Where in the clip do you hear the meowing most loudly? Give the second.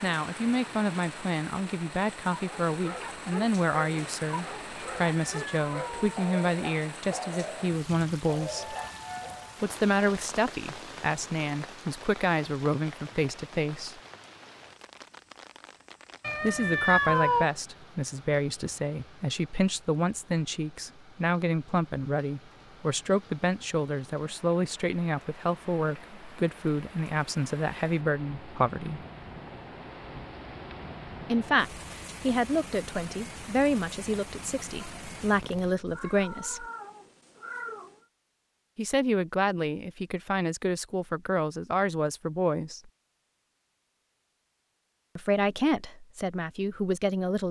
17 s.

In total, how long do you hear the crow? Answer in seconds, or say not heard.
not heard.